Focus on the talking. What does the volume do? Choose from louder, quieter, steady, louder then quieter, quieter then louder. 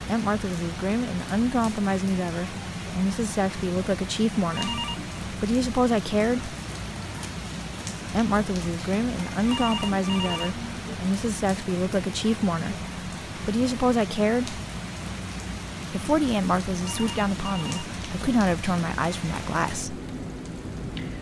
steady.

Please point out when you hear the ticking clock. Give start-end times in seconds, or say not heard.
not heard.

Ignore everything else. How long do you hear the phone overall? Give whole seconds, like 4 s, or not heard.
3 s.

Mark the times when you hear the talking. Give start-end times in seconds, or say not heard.
0.1-6.5, 8.1-14.6, 15.9-20.0.